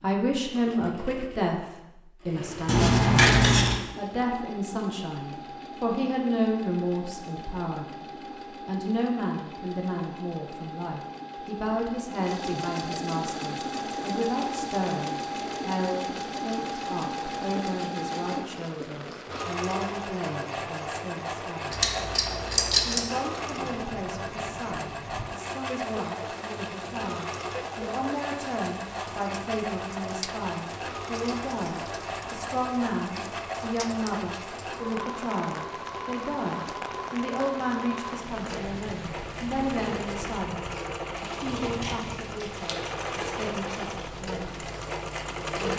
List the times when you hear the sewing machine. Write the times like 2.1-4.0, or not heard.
0.0-45.7.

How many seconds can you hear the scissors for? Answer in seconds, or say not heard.
4 s.